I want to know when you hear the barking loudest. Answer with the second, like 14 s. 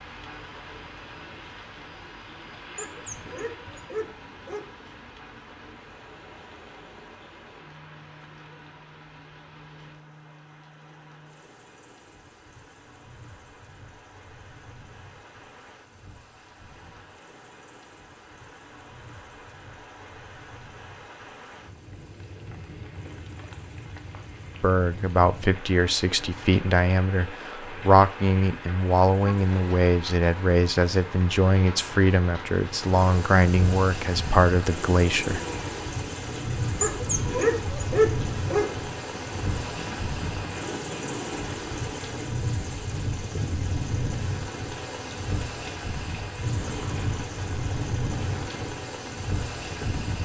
38 s.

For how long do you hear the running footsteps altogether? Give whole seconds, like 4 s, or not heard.
not heard.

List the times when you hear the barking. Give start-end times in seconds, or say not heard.
2.8-4.7, 36.8-38.8.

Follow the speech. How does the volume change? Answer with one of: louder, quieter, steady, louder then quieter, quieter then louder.
steady.